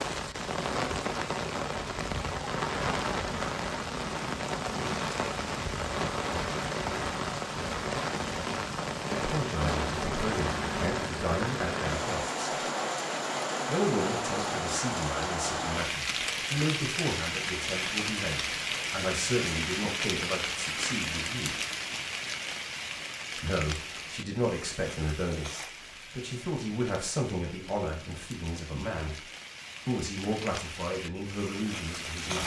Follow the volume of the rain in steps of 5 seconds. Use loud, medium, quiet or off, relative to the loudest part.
loud, loud, loud, loud, loud, quiet, medium.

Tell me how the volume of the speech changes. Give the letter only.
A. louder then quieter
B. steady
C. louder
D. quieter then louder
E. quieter
B.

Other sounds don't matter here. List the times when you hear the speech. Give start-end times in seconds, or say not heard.
9.2-12.3, 13.7-21.6, 23.4-32.4.